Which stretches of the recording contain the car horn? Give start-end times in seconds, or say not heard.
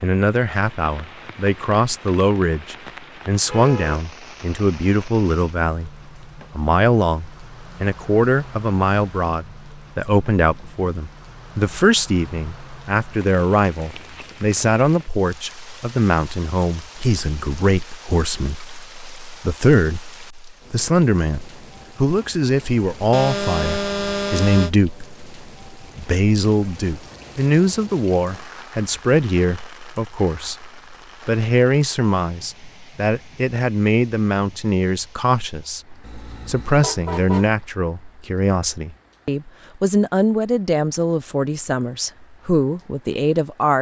3.5-4.0, 23.1-24.7, 36.0-37.5.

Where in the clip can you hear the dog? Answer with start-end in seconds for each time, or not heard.
not heard.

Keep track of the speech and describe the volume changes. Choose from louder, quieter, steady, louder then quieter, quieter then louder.
steady.